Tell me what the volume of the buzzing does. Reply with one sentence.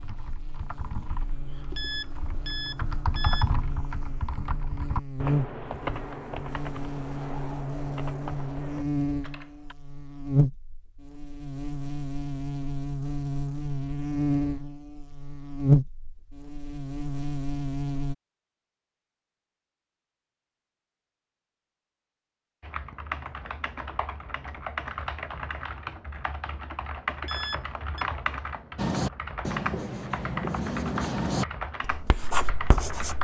The volume of the buzzing goes up.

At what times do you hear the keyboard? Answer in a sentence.
You can hear the keyboard from 0.0 to 9.8 s and from 22.6 to 33.1 s.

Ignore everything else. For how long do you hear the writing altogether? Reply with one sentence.
You can hear the writing for 4 seconds altogether.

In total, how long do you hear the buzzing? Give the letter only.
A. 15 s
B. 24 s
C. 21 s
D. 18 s
D.